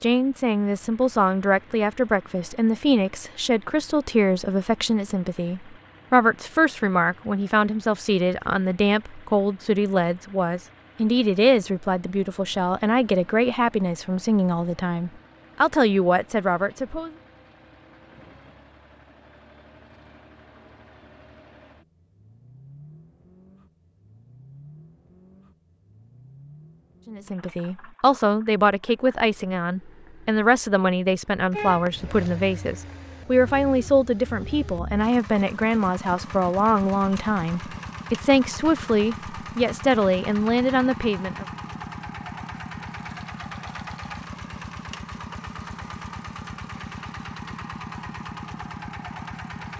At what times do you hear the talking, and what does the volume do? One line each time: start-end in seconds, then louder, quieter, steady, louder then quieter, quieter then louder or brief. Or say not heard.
0.0-17.1 steady
27.1-41.5 steady.